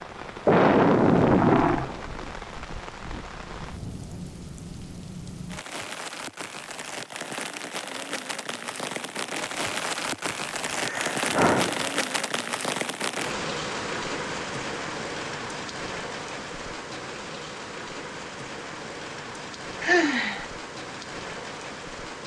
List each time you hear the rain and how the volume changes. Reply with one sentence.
The rain can be heard from 0.0 to 22.2 s, getting louder then quieter.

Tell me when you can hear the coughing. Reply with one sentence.
The coughing can't be heard in this clip.